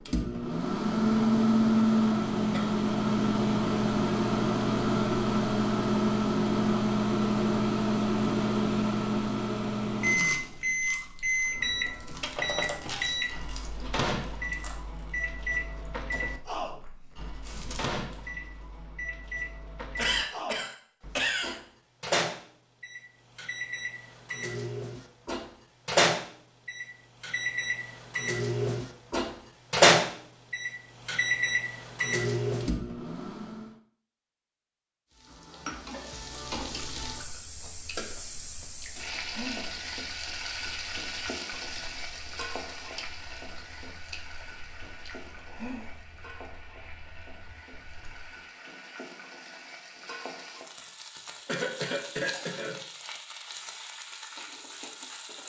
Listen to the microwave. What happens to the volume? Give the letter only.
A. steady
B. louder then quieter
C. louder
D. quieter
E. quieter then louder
E.